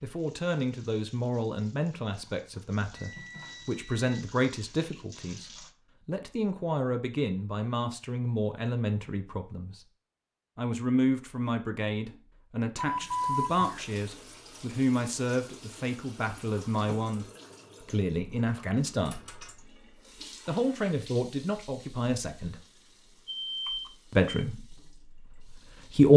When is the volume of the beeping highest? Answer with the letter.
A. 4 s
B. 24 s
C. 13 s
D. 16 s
C.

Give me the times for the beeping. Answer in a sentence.
You can hear the beeping from 3.0 to 4.2 s, from 12.8 to 13.6 s and from 22.6 to 24.2 s.